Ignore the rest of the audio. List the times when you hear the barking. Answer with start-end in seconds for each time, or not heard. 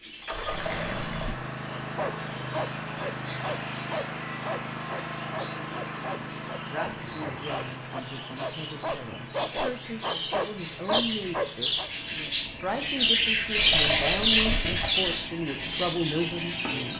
1.7-11.9.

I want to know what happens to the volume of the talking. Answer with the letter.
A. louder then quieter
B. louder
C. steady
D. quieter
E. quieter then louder
B.